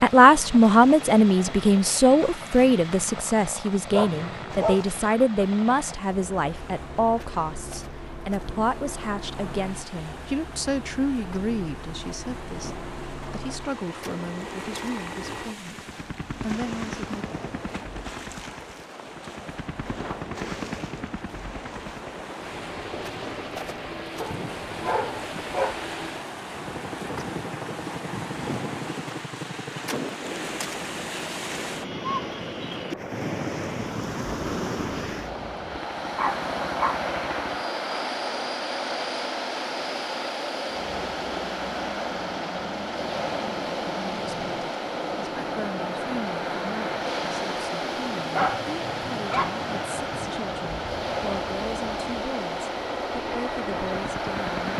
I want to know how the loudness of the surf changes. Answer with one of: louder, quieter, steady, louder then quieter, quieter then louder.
louder.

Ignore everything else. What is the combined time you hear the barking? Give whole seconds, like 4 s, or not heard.
5 s.